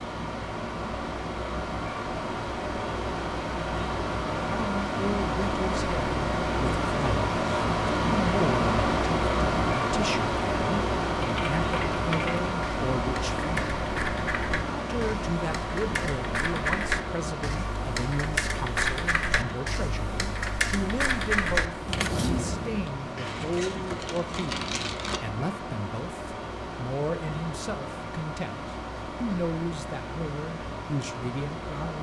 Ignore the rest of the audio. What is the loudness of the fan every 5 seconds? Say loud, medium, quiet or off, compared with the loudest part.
medium, loud, loud, medium, medium, medium, medium.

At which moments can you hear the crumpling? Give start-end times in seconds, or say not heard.
23.1-25.2.